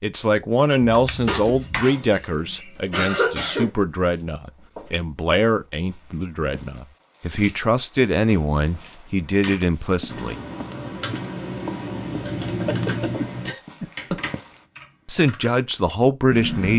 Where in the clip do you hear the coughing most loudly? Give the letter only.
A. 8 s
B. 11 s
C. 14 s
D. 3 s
D.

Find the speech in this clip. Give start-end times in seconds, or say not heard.
0.0-10.3, 15.1-16.7.